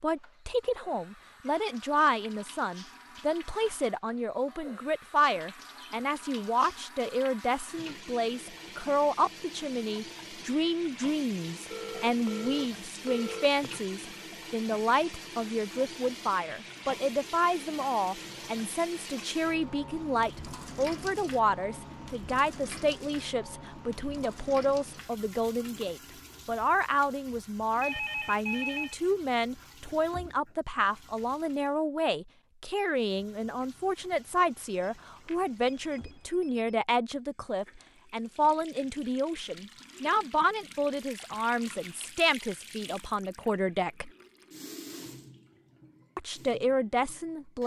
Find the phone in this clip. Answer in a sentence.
You can hear the phone from 11.7 to 13.4 s, from 27.8 to 28.9 s and from 34.7 to 36.8 s.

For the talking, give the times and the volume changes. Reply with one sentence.
The talking can be heard from 0.0 to 44.1 s, at a steady volume; and briefly from 46.1 to 47.6 s.